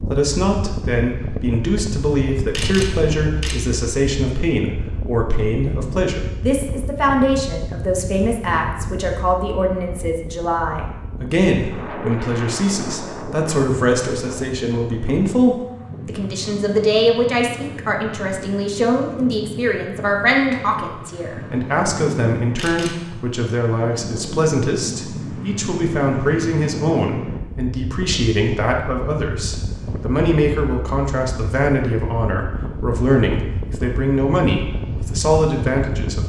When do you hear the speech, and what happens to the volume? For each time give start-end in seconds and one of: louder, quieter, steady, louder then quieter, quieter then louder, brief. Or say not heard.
0.0-36.2 steady.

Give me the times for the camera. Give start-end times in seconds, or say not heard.
2.5-3.6, 22.5-23.1.